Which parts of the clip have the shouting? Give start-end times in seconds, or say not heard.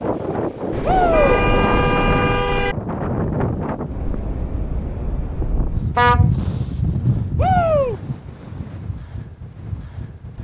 0.8-1.4, 7.3-8.0.